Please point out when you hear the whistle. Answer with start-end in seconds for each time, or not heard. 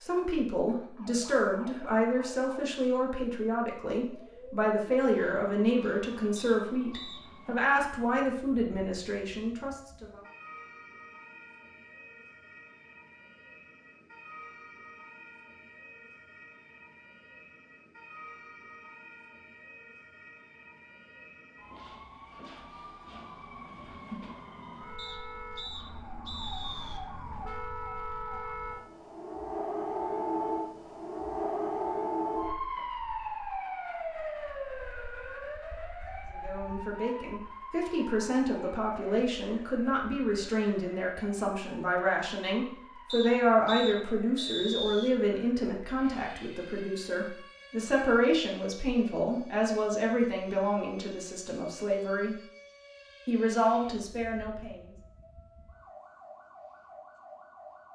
6.3-7.2, 24.9-27.0, 43.0-45.1.